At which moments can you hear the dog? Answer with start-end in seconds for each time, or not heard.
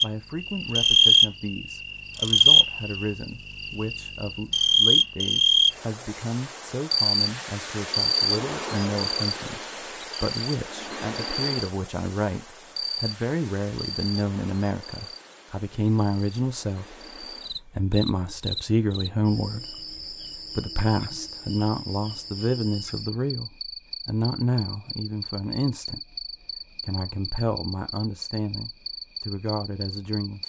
not heard.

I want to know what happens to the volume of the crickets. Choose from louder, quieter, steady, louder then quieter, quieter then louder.
quieter.